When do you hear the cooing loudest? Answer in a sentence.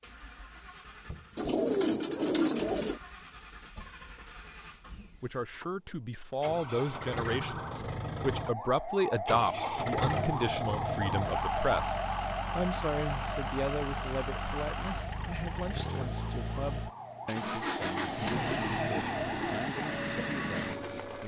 The volume of the cooing peaks at 2 seconds.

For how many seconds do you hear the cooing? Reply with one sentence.
You can hear the cooing for 4 seconds altogether.